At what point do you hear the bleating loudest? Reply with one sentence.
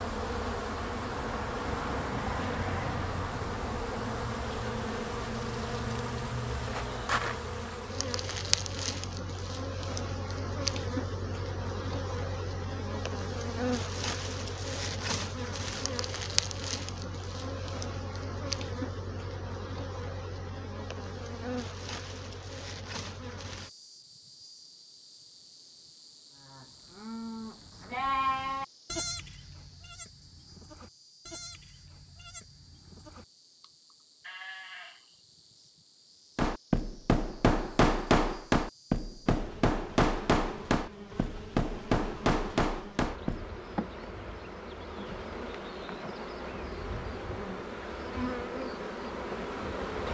The loudest moment of the bleating is at 28 seconds.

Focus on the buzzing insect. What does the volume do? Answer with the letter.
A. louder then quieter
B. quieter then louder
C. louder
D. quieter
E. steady
B.